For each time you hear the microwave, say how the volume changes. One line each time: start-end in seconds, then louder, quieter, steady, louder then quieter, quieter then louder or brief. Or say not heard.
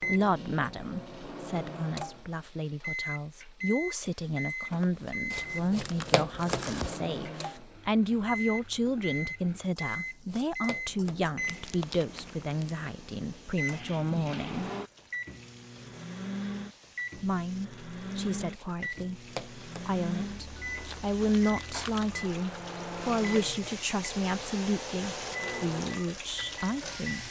0.0-27.2 steady.